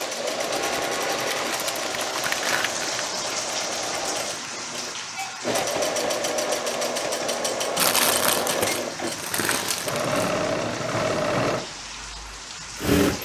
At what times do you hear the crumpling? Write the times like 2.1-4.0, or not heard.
1.3-3.0, 7.8-10.3.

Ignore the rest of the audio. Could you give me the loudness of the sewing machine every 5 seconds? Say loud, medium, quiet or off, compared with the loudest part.
medium, loud, loud.